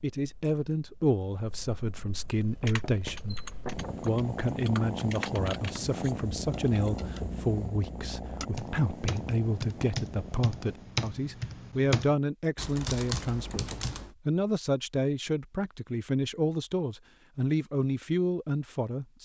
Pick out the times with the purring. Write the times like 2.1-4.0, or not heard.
0.1-10.9.